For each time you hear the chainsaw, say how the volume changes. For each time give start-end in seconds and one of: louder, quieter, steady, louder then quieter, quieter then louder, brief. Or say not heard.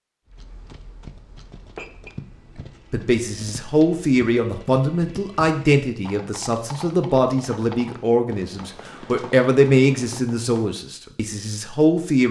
not heard.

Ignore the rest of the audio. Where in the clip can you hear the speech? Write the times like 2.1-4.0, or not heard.
2.9-12.2.